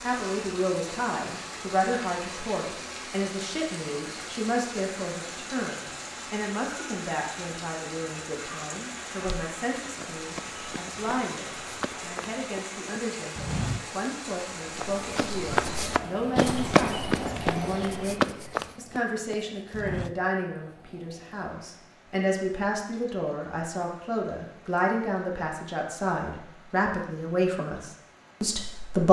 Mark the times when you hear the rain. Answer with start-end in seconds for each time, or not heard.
0.0-29.0.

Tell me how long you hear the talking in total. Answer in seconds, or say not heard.
29 s.